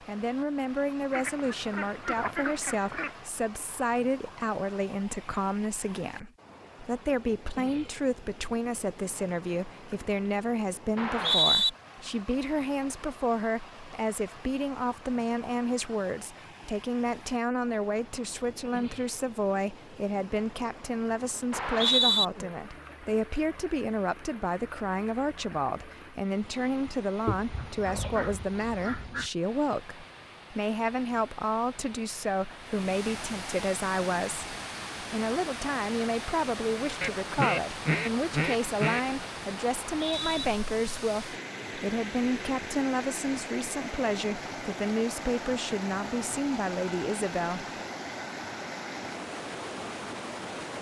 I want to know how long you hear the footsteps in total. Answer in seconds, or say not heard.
not heard.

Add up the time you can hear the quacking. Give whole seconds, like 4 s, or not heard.
6 s.